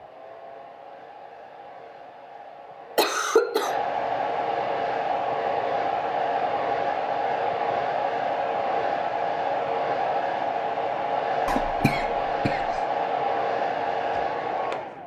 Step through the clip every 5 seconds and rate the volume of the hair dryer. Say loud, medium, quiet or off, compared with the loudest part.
medium, loud, loud.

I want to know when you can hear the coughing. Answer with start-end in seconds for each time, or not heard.
3.0-3.8, 11.4-12.8.